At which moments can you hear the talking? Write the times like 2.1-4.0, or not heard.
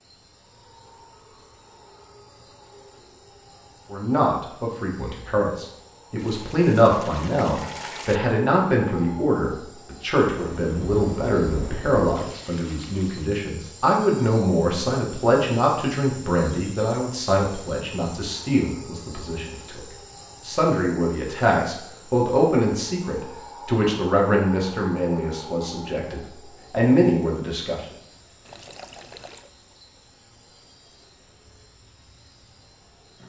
3.9-19.8, 20.4-27.9.